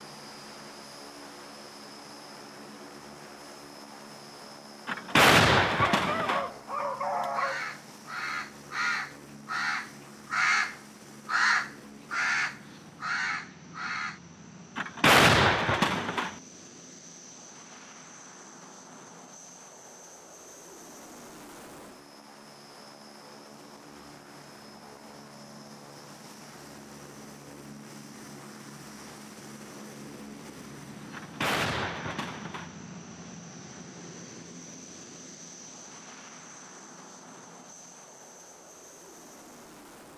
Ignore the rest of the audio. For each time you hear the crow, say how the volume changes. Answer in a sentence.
The crow can be heard from 7.3 to 14.2 s, getting louder then quieter.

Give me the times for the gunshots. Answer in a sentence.
You can hear the gunshots from 4.8 to 6.5 s, from 14.8 to 16.4 s and from 31.1 to 32.7 s.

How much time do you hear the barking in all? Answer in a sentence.
The barking can be heard for 2 seconds in total.